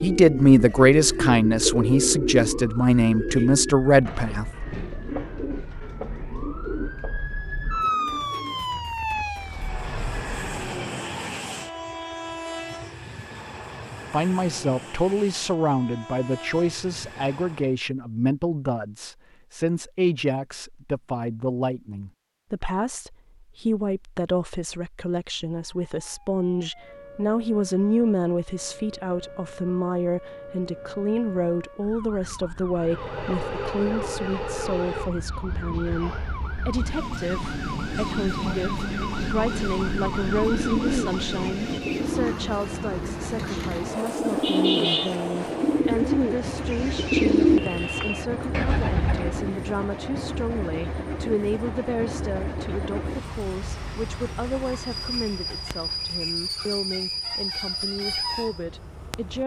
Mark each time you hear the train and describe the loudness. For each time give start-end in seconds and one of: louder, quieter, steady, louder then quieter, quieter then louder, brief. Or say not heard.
9.4-17.8 quieter
32.7-59.4 steady.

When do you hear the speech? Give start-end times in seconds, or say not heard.
0.0-4.5, 14.1-59.4.